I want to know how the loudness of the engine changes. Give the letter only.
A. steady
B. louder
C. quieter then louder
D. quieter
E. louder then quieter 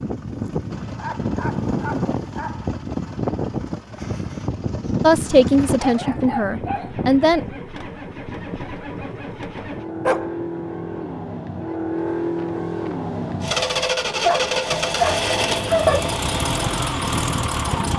B.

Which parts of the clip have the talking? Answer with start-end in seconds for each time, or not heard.
5.0-7.4.